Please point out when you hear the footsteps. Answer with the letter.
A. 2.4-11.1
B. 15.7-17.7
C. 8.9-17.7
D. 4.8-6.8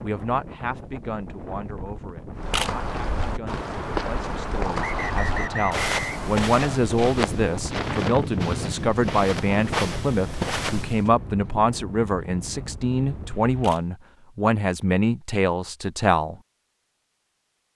A.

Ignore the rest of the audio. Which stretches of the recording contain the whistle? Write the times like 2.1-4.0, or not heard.
4.8-6.8.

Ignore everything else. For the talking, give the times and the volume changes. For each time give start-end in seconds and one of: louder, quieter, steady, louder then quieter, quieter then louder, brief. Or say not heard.
0.0-16.4 louder.